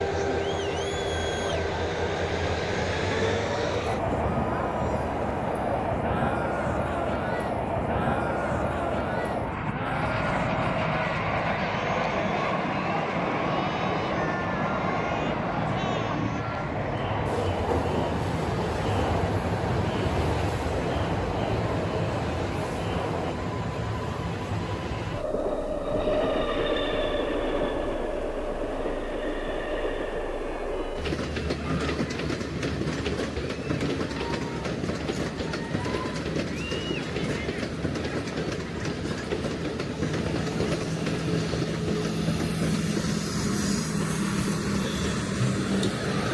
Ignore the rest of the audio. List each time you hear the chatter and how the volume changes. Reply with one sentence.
You can hear the chatter from 0.0 to 23.4 s, at a steady volume.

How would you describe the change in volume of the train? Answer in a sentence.
The volume of the train stays about the same.